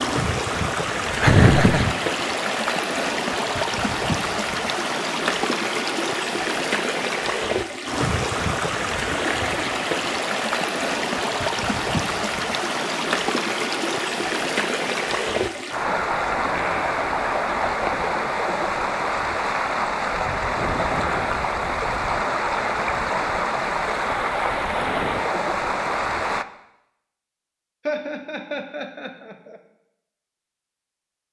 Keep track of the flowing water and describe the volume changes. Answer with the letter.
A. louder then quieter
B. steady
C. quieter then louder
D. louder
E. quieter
B.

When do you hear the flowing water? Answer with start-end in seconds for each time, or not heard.
0.0-26.4.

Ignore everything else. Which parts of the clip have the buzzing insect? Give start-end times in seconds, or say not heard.
not heard.